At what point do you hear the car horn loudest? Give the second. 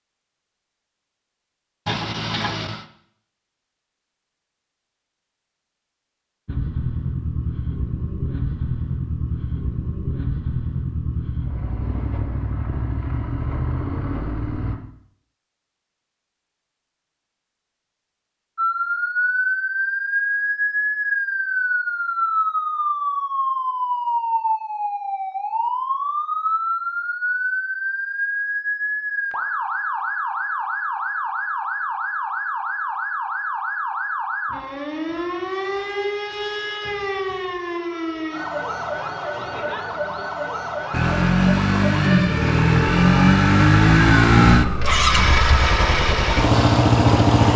2 s.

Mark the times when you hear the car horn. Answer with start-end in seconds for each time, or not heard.
1.9-2.9, 44.6-45.7.